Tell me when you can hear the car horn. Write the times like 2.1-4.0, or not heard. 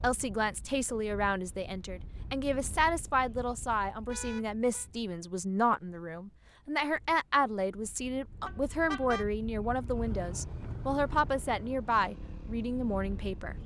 4.0-4.8, 8.4-9.2.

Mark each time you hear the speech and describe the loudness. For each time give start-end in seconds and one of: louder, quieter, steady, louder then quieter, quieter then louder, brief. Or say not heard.
0.0-13.6 steady.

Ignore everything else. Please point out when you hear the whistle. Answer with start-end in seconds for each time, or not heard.
not heard.